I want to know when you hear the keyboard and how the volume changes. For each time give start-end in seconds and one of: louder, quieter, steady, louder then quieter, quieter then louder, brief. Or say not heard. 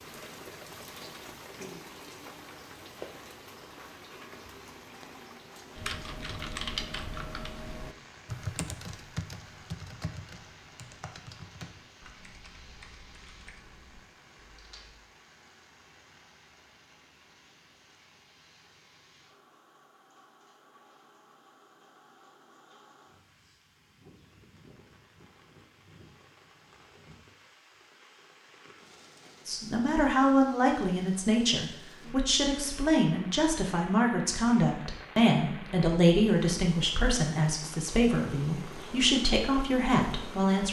5.8-15.0 quieter.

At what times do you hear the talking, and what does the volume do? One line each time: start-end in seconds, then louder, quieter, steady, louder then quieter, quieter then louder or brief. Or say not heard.
29.4-40.6 steady.